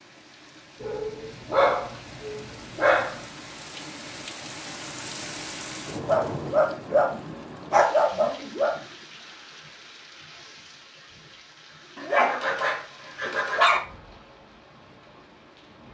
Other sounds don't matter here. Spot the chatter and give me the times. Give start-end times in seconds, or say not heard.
not heard.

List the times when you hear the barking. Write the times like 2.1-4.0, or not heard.
0.8-3.2, 6.0-8.8, 11.9-13.8.